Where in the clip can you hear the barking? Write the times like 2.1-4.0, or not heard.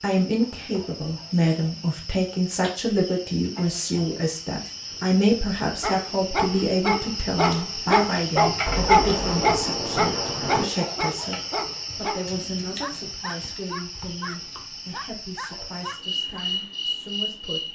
5.8-16.4.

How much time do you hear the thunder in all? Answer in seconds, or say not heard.
2 s.